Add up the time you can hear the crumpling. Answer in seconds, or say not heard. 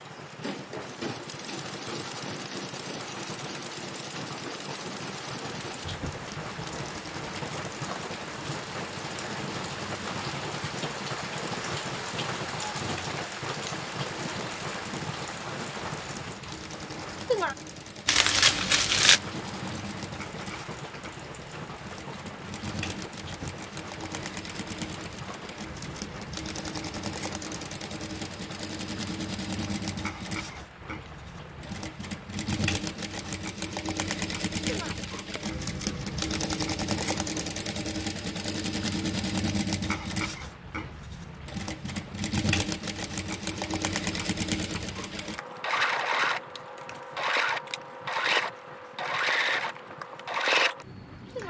2 s.